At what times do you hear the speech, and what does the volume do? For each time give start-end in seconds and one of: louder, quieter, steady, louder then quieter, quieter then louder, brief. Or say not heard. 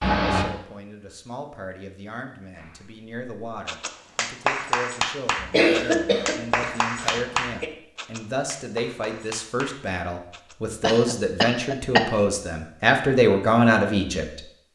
0.2-14.4 louder.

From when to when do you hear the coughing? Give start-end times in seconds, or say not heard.
0.0-0.5, 5.4-7.7, 10.8-12.1.